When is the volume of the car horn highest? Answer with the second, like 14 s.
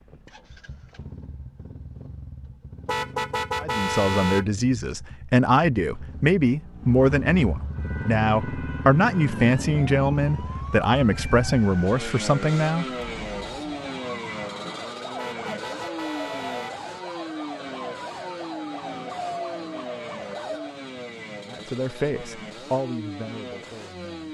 4 s.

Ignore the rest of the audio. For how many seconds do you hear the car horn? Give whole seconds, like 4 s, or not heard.
3 s.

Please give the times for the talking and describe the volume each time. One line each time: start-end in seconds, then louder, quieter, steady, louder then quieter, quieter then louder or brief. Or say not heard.
3.6-12.8 steady
21.5-24.2 brief.